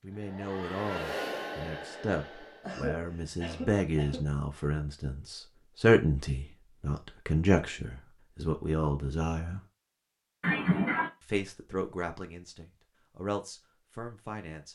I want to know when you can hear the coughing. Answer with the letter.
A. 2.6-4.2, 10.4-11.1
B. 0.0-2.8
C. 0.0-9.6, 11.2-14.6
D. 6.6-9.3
A.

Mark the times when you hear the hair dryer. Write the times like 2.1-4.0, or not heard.
0.0-2.8.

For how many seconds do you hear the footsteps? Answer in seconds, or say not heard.
not heard.